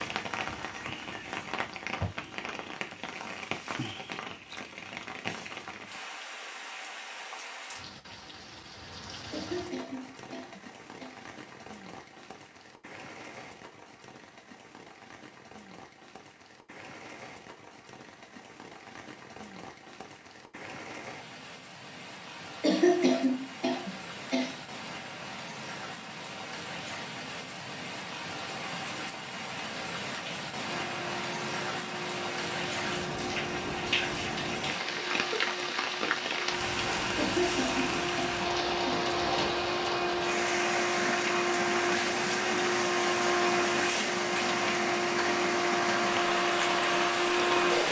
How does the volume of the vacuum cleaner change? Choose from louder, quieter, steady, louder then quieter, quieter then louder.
louder.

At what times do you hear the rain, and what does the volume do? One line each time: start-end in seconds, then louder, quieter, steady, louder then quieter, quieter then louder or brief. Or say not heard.
0.0-47.8 quieter then louder.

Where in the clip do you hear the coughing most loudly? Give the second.
23 s.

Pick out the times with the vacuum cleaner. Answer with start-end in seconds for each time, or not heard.
30.6-47.8.